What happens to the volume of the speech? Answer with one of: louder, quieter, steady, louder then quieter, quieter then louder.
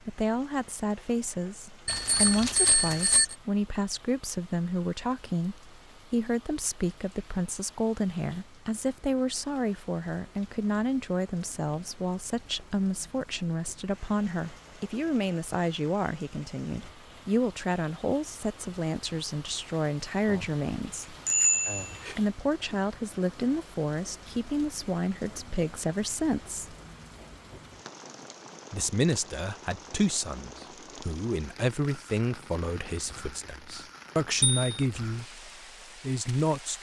steady.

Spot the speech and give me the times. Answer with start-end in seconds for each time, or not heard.
0.1-21.1, 22.1-26.8, 28.7-36.7.